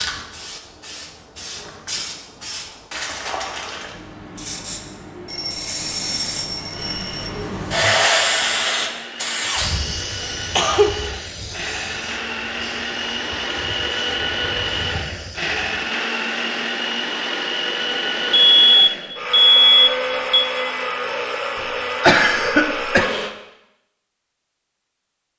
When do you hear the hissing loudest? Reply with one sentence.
The volume of the hissing peaks at 8 seconds.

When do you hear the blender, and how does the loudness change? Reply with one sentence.
You can hear the blender from 6.7 to 23.4 s, getting louder.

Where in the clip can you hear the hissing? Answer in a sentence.
You can hear the hissing from 0.0 to 15.8 s.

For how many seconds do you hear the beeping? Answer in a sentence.
The beeping can be heard for 4 seconds in total.